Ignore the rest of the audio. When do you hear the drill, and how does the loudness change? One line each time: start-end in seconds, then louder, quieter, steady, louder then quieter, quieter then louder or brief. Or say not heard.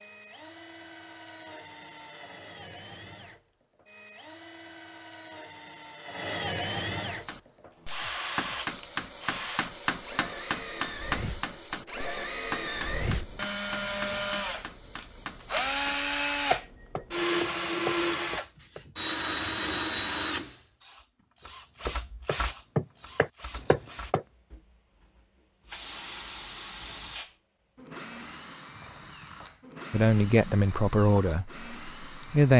0.0-32.5 louder then quieter.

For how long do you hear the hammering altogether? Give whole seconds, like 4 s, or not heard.
14 s.